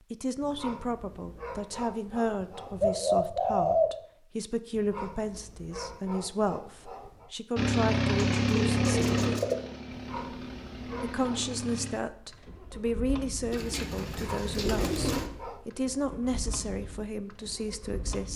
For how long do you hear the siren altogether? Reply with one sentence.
The siren can't be heard in this clip.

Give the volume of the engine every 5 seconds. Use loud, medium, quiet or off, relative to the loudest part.
off, loud, quiet, quiet.